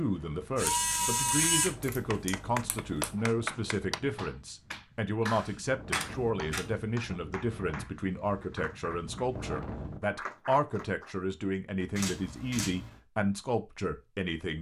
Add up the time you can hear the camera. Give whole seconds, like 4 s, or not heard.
5 s.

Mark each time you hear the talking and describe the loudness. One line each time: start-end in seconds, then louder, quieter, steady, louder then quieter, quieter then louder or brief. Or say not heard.
0.0-14.5 steady.